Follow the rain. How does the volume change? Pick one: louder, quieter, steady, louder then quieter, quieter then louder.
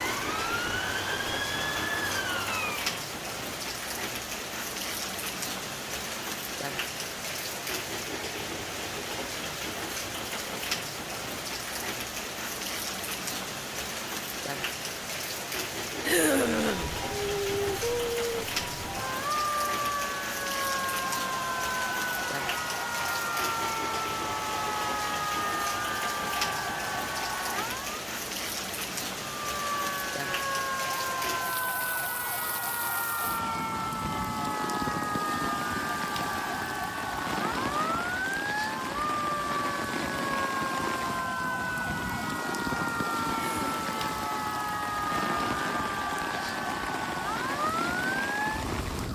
steady.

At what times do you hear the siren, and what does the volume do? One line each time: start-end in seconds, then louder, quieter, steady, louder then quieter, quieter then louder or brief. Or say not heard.
0.0-3.0 brief
16.2-28.0 steady
29.4-49.1 steady.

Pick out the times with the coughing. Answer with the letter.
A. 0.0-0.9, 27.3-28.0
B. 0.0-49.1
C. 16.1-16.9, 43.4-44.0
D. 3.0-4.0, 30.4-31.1
C.